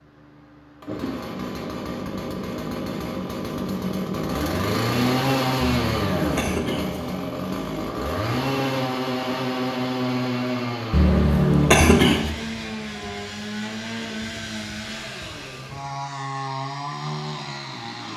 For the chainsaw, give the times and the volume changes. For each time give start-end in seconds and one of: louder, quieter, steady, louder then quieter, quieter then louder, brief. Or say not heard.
0.0-18.1 louder then quieter.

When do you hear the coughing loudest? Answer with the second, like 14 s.
12 s.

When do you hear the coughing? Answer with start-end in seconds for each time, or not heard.
5.6-7.0, 10.9-12.3.